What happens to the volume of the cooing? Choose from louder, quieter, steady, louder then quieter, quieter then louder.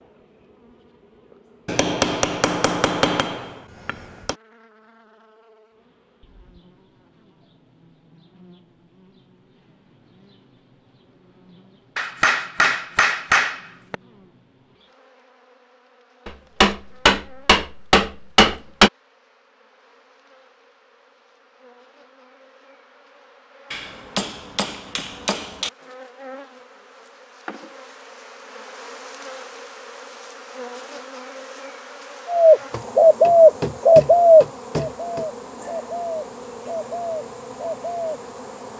quieter.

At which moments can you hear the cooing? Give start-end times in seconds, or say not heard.
32.2-38.2.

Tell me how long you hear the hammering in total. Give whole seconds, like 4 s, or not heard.
12 s.